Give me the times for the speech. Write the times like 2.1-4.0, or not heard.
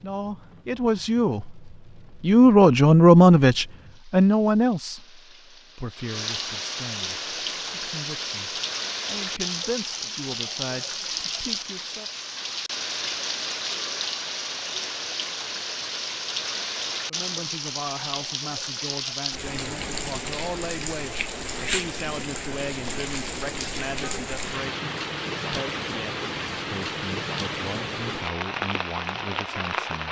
0.0-12.1, 17.1-30.0.